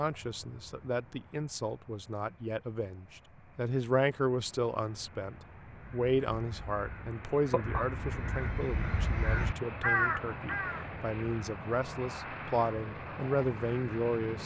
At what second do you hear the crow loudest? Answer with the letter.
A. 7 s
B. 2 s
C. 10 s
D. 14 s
C.